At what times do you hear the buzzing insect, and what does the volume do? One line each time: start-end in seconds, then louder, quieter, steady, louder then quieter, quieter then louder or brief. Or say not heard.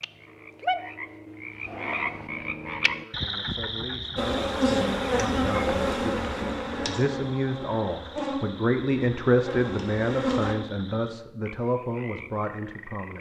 4.2-10.6 quieter.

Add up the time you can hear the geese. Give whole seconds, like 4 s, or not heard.
not heard.